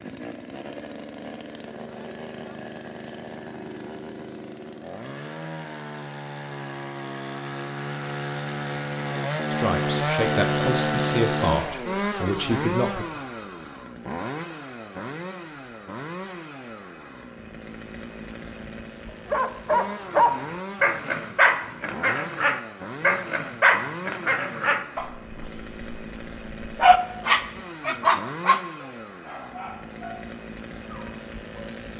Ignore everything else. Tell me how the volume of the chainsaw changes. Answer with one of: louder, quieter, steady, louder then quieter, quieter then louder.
louder then quieter.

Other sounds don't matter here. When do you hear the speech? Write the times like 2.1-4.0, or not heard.
9.5-13.1.